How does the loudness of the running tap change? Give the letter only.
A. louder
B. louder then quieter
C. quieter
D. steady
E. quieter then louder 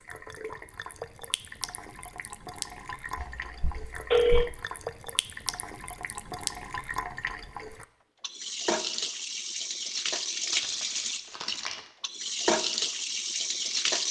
A.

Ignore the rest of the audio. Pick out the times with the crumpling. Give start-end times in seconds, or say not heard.
10.6-11.9.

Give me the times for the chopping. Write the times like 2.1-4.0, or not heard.
not heard.